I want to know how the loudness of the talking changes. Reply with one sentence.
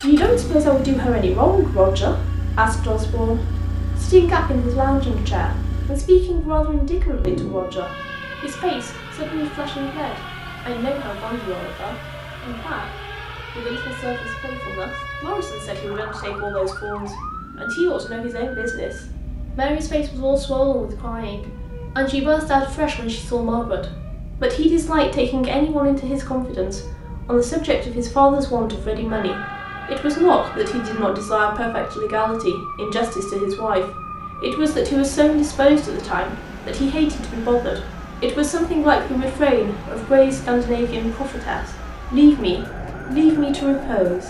The volume of the talking goes down, then up.